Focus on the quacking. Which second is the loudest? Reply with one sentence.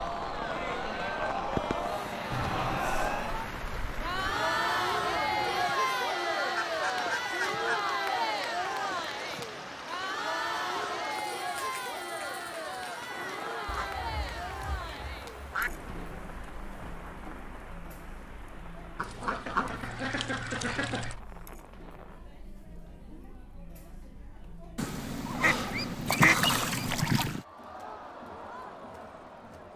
The loudest moment of the quacking is at 26 seconds.